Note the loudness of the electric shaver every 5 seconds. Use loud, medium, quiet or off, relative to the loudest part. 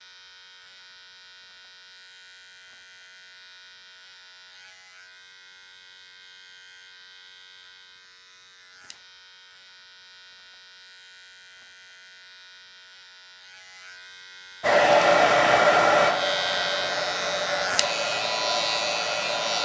quiet, quiet, quiet, loud.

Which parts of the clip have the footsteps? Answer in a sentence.
The footsteps can't be heard in this clip.